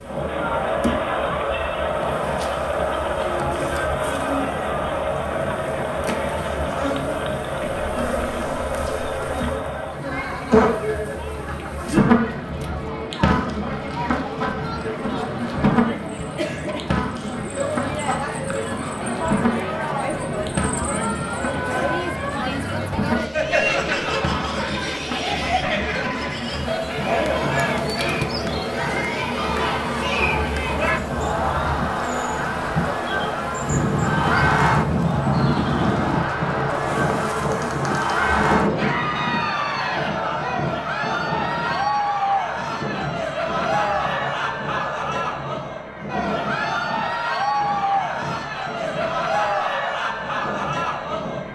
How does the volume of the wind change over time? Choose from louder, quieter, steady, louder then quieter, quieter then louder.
louder then quieter.